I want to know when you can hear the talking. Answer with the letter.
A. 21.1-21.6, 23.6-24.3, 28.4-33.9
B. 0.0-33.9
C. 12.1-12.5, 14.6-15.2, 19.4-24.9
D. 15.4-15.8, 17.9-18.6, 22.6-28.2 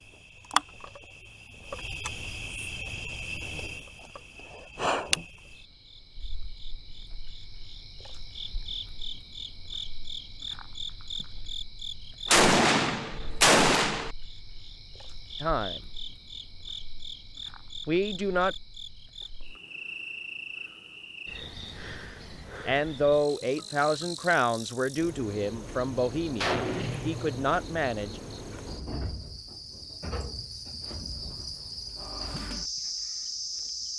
D.